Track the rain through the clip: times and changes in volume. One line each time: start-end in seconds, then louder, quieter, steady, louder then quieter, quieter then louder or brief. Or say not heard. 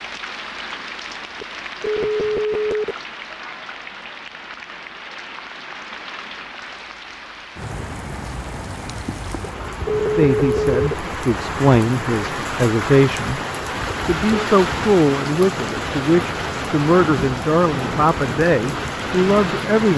0.0-19.9 louder.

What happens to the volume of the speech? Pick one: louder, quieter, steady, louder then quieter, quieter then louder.
steady.